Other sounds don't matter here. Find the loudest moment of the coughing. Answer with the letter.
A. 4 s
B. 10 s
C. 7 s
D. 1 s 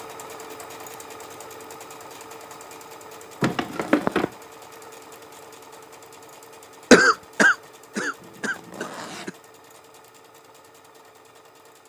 C.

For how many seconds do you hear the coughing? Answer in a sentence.
You can hear the coughing for 3 seconds altogether.